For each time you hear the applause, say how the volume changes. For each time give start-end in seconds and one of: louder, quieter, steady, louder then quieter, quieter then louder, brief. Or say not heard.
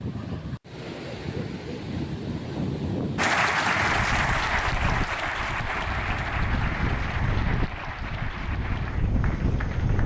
3.1-10.0 quieter.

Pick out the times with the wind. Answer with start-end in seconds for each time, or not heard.
0.0-10.0.